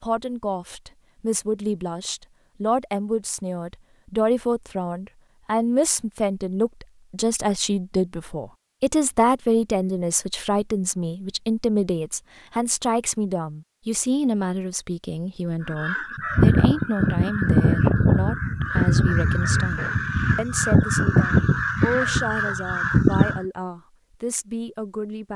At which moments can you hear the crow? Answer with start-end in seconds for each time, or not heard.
15.7-23.4.